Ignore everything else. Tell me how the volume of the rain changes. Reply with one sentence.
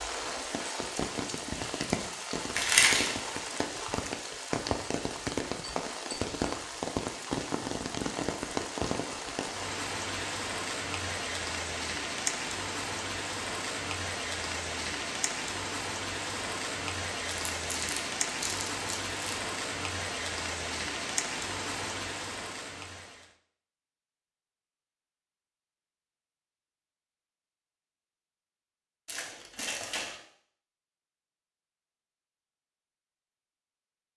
The volume of the rain stays about the same.